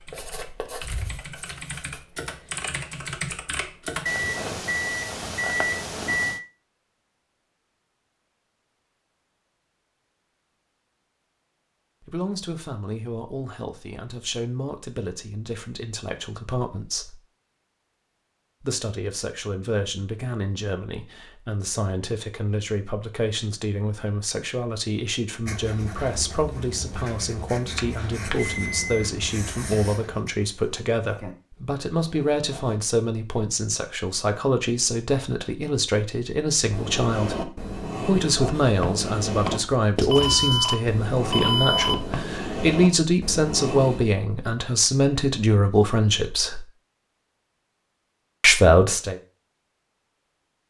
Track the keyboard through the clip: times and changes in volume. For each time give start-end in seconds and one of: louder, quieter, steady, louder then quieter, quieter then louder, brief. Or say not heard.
0.0-4.1 louder.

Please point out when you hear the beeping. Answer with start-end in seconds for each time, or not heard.
4.0-6.4, 27.7-29.1, 39.4-42.1.